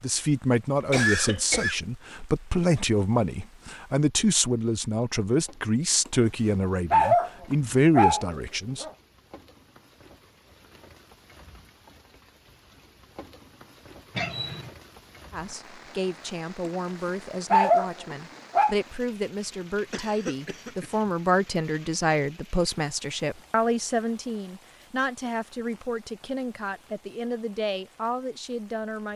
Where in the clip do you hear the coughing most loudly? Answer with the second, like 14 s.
1 s.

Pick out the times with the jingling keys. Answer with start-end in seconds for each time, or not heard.
not heard.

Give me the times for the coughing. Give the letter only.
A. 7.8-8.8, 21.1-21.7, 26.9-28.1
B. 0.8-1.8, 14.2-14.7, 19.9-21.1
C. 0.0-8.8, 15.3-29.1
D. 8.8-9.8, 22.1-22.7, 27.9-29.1
B.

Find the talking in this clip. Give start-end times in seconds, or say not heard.
0.0-8.8, 15.3-29.1.